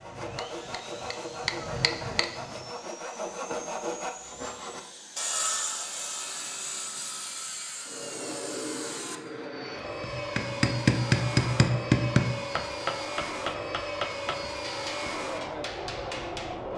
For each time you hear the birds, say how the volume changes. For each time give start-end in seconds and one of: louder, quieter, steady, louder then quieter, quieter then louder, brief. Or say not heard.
not heard.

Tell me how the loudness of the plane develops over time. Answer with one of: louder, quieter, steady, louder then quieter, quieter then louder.
louder.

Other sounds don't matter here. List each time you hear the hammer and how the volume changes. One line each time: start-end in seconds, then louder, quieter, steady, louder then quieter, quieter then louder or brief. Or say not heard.
0.0-2.6 brief
10.0-16.7 quieter.